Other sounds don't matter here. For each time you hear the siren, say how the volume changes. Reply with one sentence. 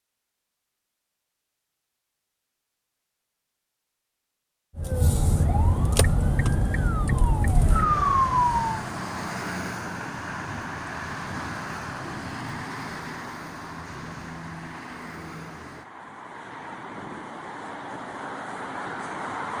You can hear the siren from 4.8 to 8.8 s, getting louder.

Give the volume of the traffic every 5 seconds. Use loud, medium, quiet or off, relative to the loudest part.
off, loud, loud, loud.